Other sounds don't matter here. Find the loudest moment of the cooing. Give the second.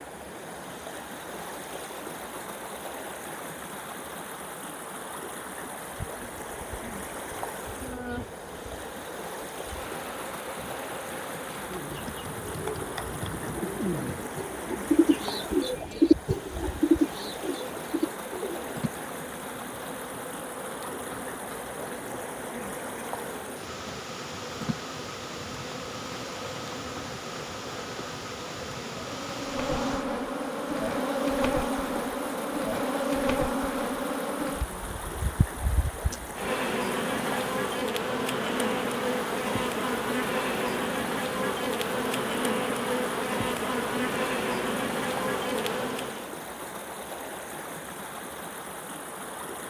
16 s.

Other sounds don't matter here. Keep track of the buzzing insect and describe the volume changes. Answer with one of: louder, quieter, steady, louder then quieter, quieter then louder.
louder.